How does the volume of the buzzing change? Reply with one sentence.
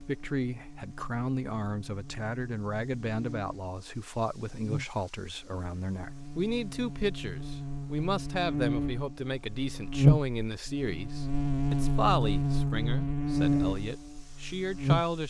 The loudness of the buzzing goes up.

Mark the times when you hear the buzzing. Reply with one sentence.
The buzzing can be heard from 0.0 to 15.2 s.